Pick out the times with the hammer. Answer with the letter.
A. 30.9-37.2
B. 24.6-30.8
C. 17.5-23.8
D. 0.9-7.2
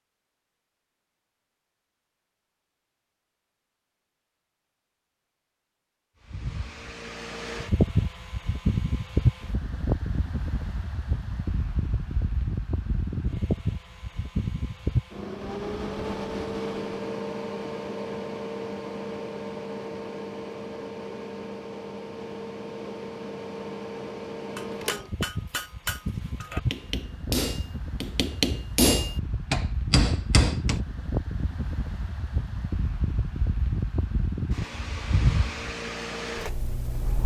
B.